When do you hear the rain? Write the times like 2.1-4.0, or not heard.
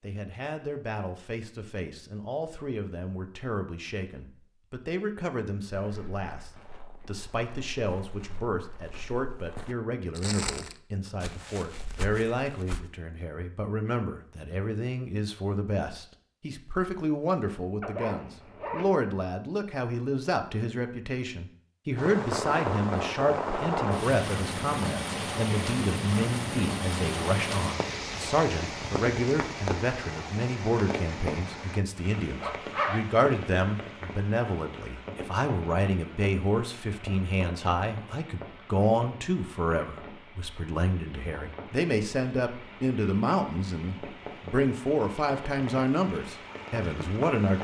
21.9-47.5.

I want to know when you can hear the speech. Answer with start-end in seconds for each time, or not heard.
0.0-47.5.